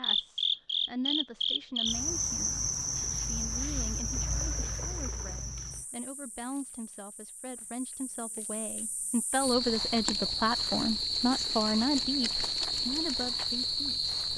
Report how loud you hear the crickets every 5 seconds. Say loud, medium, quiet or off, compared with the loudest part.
loud, medium, loud.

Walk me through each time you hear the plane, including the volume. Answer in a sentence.
You can't hear the plane here.